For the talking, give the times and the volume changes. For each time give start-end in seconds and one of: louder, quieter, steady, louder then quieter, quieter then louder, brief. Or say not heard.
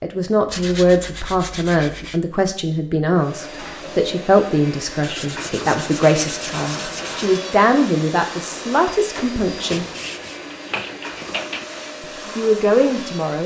0.0-9.8 steady
12.0-13.4 brief.